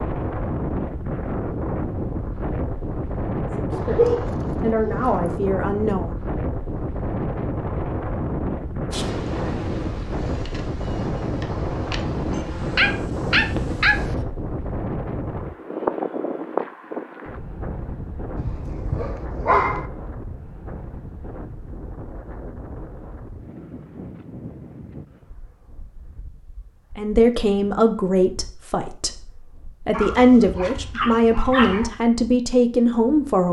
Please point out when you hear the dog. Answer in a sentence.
You can hear the dog from 3.7 to 5.3 s, from 12.3 to 14.0 s, from 18.4 to 19.9 s and from 29.9 to 31.9 s.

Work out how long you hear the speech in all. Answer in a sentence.
The speech can be heard for 9 seconds in total.